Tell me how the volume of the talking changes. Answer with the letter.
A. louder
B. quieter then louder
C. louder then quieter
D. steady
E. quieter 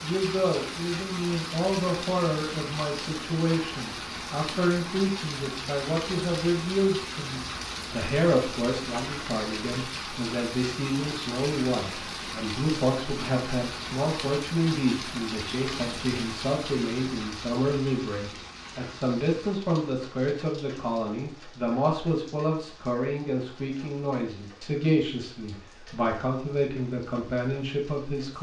D.